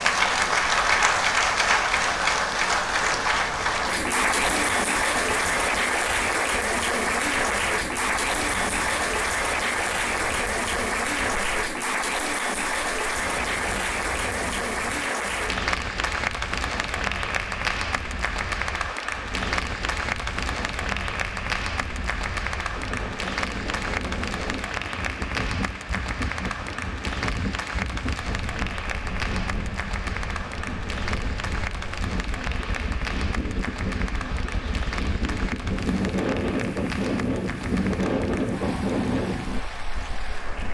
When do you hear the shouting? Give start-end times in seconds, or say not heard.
not heard.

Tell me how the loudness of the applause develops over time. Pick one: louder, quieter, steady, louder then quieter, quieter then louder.
quieter.